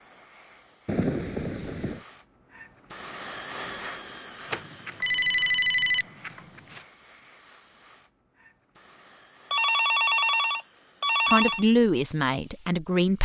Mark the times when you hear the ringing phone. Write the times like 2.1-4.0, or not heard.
0.8-2.0, 4.5-6.8, 9.5-11.7.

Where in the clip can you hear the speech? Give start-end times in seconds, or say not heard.
11.2-13.2.